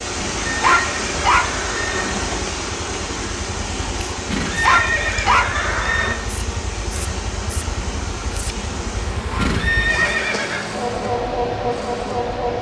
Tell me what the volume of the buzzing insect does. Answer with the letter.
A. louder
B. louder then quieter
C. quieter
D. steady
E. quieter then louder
A.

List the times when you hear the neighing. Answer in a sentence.
You can hear the neighing from 0.1 to 2.1 s, from 4.3 to 6.2 s and from 9.3 to 10.7 s.